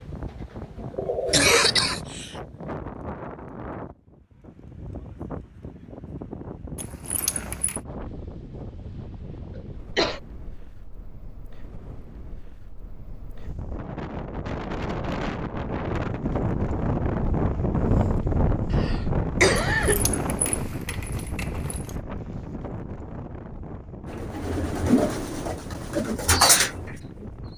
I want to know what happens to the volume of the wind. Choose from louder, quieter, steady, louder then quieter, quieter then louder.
louder then quieter.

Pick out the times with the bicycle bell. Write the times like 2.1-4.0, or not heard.
not heard.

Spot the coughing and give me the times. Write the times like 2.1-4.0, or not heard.
1.2-2.4, 9.6-10.2, 18.7-20.1.